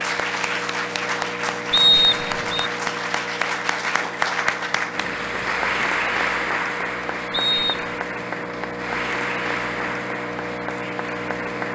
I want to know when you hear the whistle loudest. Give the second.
2 s.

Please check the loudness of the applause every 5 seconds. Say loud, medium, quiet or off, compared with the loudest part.
loud, loud, medium.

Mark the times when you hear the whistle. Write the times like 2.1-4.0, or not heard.
1.7-2.7, 7.3-7.8.